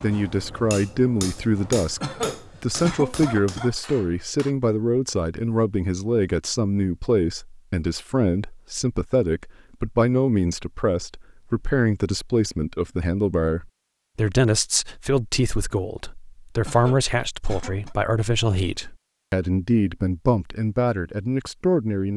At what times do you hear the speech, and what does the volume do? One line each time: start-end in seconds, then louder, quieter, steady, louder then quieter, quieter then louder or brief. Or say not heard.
0.0-2.0 brief
2.6-22.1 steady.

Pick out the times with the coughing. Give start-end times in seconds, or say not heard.
2.0-3.8, 16.6-17.9.